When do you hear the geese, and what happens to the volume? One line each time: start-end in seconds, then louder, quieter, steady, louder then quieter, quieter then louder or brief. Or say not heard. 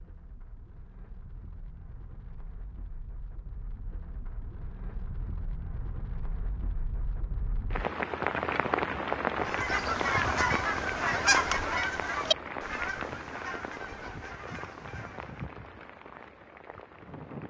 9.4-15.4 quieter.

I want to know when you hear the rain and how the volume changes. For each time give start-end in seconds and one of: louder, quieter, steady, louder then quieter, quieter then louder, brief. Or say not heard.
0.0-17.4 louder then quieter.